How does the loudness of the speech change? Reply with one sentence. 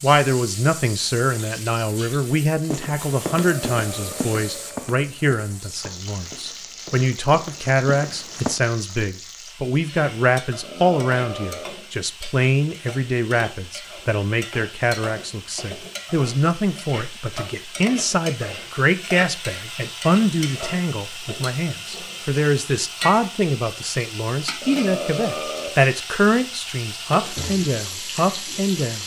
The loudness of the speech stays about the same.